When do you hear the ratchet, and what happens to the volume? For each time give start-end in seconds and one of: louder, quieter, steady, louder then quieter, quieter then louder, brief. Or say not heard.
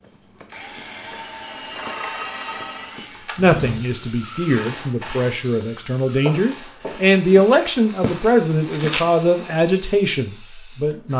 not heard.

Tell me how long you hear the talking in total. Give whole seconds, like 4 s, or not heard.
8 s.